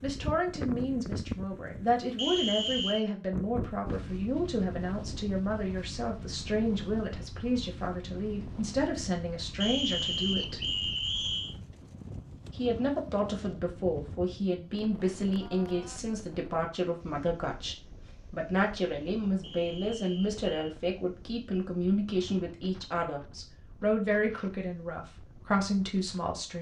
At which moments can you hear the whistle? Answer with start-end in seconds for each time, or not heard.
2.1-3.0, 9.6-11.6, 19.4-20.8.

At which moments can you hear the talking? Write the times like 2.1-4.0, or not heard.
0.0-10.7, 12.5-26.5.